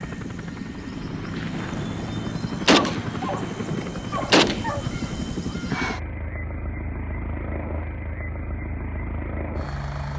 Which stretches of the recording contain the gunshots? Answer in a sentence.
You can hear the gunshots from 1.4 to 4.7 s.